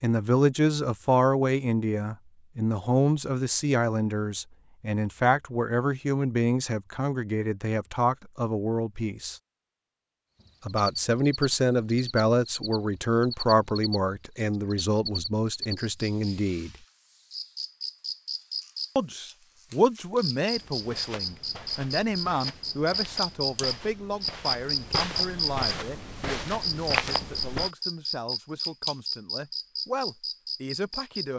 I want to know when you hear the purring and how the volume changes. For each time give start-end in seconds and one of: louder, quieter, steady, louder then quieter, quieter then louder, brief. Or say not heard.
not heard.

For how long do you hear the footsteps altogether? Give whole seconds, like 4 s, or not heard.
7 s.